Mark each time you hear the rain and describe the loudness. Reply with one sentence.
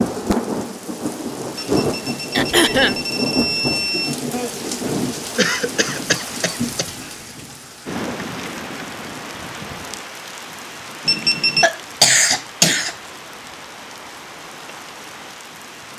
You can hear the rain from 0.0 to 15.9 s, getting quieter.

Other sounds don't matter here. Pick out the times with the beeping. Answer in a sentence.
The beeping can be heard from 1.6 to 4.2 s and from 11.1 to 11.7 s.